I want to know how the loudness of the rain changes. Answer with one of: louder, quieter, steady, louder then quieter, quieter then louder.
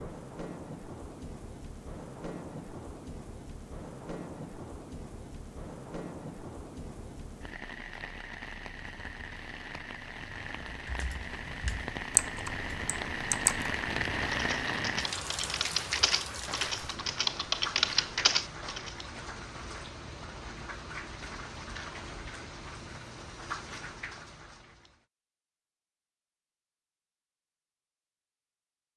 louder then quieter.